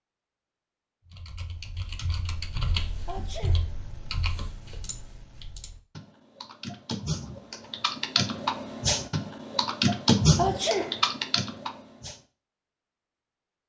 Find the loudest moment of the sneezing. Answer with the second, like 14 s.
11 s.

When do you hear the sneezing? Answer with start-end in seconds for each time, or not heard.
3.0-3.8, 10.3-11.1.